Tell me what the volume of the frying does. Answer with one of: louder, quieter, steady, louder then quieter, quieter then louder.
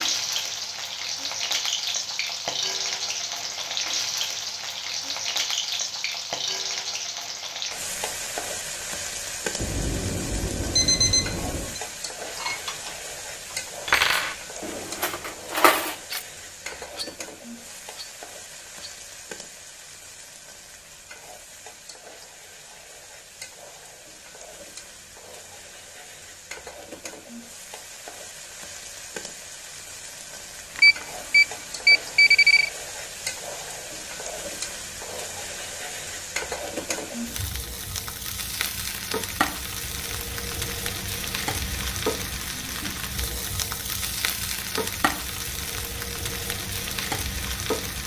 quieter then louder.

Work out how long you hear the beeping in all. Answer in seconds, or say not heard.
4 s.